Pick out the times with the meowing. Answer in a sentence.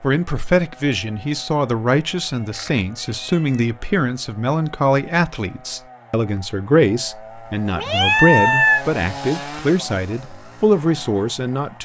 The meowing can be heard from 2.2 to 3.6 s and from 7.8 to 8.8 s.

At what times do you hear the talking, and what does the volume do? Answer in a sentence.
You can hear the talking from 0.0 to 11.8 s, at a steady volume.